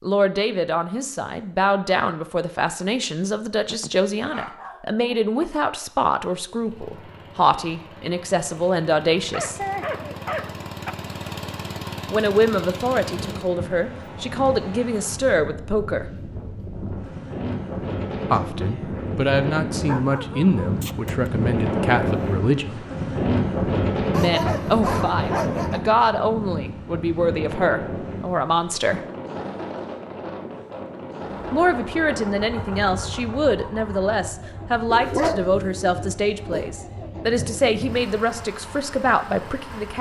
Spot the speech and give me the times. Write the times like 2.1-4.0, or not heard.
0.0-9.6, 12.1-16.1, 18.3-22.9, 24.1-29.0, 31.5-39.9.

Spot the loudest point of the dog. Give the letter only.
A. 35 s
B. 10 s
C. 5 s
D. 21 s
A.